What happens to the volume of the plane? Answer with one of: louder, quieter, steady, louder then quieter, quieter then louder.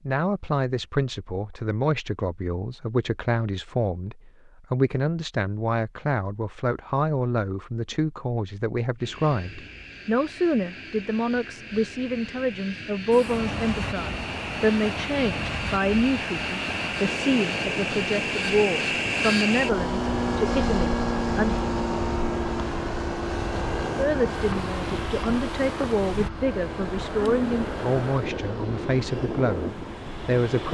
louder then quieter.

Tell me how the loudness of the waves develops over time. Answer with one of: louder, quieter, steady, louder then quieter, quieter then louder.
steady.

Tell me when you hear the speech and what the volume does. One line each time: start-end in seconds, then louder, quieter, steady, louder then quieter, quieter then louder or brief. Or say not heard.
0.1-21.6 steady
23.9-30.6 steady.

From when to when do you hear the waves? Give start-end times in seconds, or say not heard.
13.1-30.6.